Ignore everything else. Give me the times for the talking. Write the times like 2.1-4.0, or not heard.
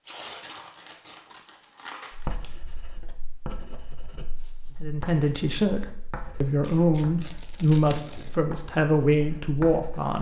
4.8-10.1.